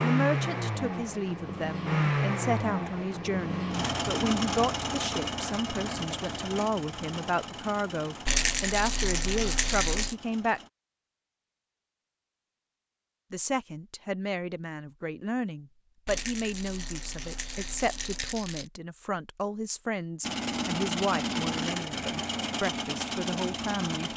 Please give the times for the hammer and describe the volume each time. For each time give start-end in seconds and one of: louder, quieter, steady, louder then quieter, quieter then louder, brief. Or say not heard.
not heard.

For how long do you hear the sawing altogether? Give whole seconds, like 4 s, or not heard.
not heard.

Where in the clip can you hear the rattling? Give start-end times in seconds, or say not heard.
8.2-10.2, 16.1-18.7.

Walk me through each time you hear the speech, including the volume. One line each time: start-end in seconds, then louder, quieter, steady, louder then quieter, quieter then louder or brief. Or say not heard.
0.0-10.6 steady
13.3-24.1 steady.